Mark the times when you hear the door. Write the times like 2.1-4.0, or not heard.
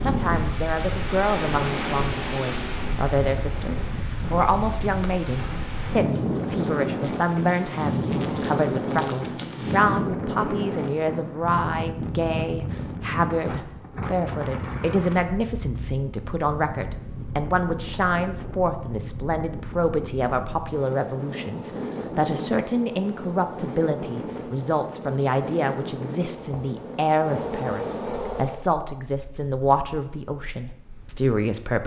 not heard.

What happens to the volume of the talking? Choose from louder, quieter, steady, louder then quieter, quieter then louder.
steady.